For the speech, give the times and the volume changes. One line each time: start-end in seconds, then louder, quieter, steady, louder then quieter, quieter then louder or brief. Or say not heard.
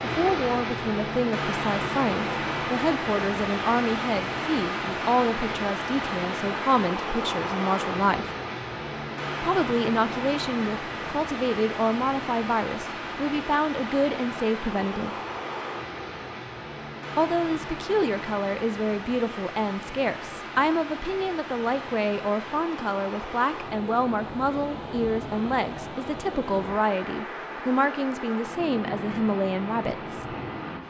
0.0-8.3 steady
9.4-15.2 steady
17.1-30.4 steady.